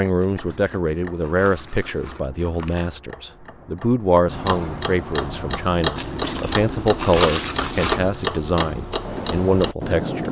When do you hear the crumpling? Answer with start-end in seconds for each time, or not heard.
0.1-2.9, 6.0-8.2.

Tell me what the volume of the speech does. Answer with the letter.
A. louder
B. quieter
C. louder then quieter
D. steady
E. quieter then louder
D.